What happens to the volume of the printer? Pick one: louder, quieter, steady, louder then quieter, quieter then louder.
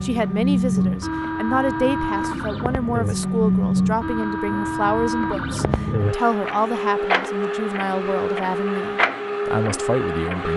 steady.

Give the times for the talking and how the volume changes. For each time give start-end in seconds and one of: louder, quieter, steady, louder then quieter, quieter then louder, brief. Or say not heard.
0.0-10.5 steady.